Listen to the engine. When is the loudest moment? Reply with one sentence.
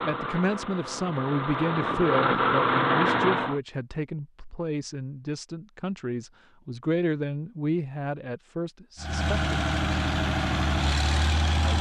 The volume of the engine peaks at 3 seconds.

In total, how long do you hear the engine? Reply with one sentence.
The engine can be heard for 6 seconds in total.